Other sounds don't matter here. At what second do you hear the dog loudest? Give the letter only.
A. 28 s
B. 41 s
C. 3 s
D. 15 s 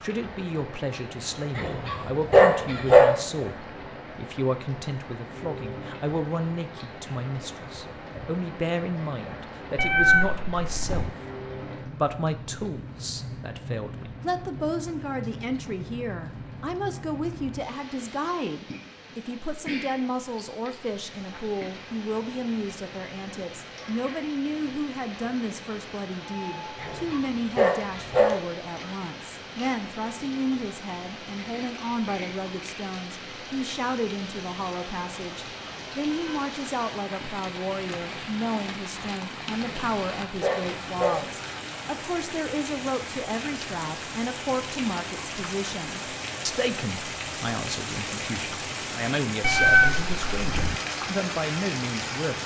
C.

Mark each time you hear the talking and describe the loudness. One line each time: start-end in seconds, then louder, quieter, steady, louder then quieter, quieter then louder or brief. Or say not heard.
0.0-11.1 steady
11.8-52.4 steady.